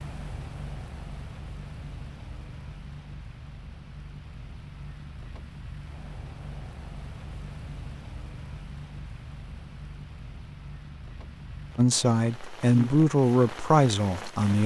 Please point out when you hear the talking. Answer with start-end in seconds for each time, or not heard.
11.8-14.6.